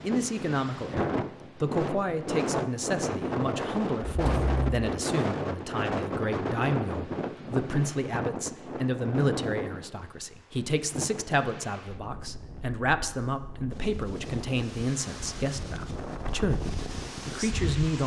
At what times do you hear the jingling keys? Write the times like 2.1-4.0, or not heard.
4.0-4.8.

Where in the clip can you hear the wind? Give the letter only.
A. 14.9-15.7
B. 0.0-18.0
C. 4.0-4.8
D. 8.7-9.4
B.